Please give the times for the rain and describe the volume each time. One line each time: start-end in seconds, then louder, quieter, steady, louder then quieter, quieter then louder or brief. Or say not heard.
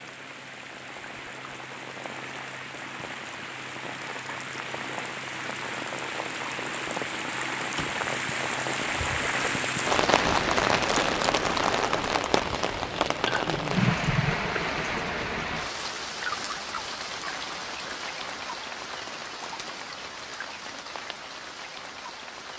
0.0-22.5 louder then quieter.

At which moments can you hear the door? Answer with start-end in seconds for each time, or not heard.
7.6-8.0.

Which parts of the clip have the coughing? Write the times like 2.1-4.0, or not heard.
13.2-14.6.